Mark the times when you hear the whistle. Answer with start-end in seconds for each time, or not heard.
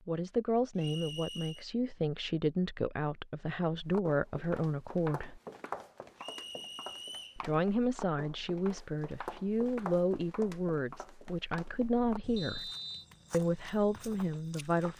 0.8-1.6, 6.2-7.4, 12.3-13.1.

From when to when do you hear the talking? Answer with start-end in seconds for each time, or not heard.
0.1-5.4, 7.3-12.7, 13.3-14.9.